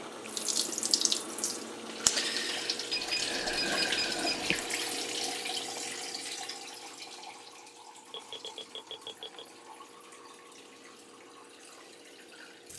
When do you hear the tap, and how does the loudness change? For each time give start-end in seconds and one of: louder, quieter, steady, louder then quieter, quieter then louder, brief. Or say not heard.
0.0-12.7 quieter.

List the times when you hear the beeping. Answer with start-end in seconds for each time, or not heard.
2.9-4.5, 8.1-9.5.